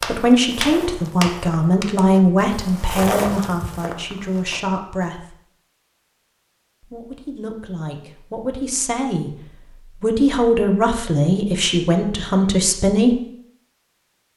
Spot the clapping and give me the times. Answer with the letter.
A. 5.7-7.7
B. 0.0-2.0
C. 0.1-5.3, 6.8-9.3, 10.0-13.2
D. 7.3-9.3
B.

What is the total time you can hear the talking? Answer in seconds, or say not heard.
11 s.